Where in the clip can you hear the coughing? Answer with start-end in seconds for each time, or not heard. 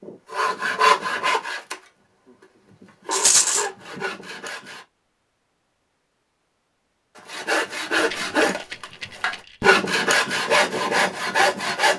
not heard.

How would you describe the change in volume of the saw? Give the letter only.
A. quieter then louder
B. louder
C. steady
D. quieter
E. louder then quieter
A.